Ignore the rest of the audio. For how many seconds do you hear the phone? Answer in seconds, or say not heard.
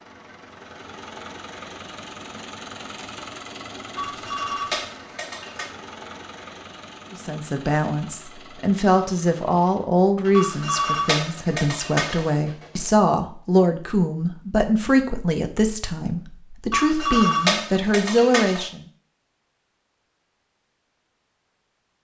6 s.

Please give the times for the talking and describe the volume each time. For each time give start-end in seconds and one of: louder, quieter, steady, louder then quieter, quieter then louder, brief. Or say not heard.
7.1-18.8 steady.